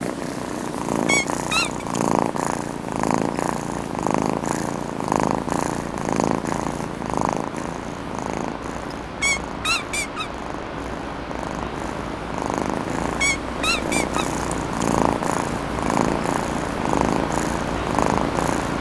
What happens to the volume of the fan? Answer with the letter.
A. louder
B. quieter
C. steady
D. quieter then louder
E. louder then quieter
A.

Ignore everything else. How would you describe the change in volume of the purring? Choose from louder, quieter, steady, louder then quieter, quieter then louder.
quieter then louder.